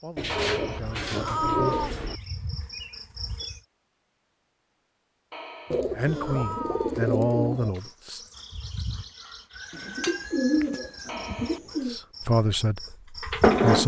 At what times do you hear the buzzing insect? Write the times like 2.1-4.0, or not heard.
0.0-3.6, 7.8-13.8.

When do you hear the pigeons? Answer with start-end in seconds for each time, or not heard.
0.1-2.2, 5.7-7.7, 9.7-12.0.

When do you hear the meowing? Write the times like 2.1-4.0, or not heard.
0.2-1.9, 5.3-7.0, 11.1-11.8.